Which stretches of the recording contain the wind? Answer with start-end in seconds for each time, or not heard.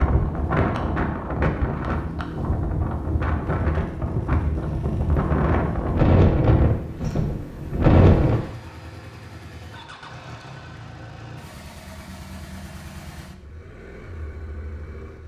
0.0-8.4.